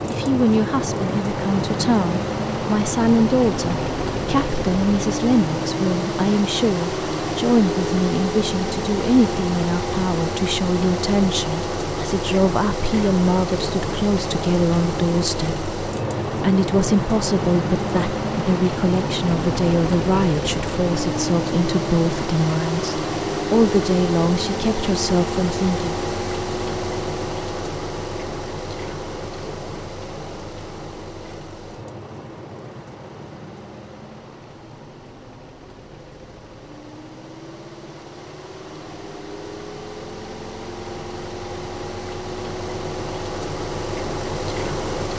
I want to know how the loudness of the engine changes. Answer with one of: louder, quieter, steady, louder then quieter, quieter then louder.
quieter.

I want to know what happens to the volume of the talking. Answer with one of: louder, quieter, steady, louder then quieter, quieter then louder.
steady.